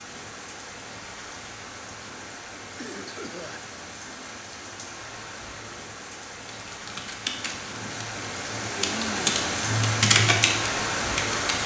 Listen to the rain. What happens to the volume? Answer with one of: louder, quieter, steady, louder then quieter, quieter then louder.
louder.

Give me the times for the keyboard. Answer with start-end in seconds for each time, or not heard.
6.5-11.6.